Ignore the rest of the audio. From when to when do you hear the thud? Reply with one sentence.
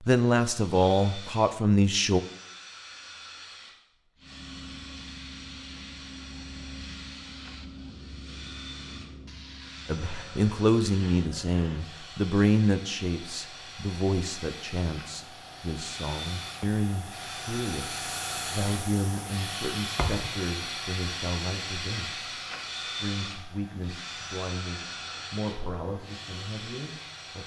The thud can be heard from 19.9 to 20.4 s.